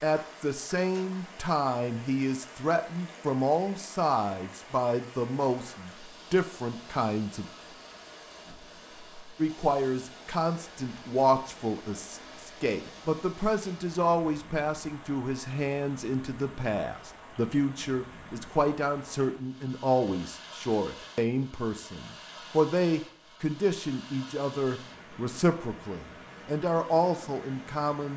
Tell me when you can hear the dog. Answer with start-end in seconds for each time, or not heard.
not heard.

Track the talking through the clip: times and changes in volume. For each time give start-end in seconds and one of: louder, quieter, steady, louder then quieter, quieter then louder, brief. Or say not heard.
0.0-7.5 steady
9.3-28.1 steady.